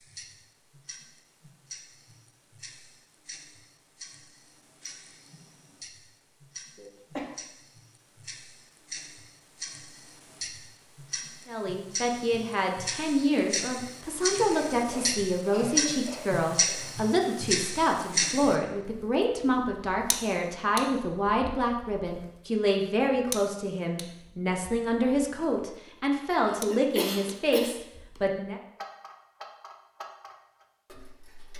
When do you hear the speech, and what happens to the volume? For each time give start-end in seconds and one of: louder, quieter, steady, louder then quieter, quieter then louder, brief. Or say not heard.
11.4-28.6 steady.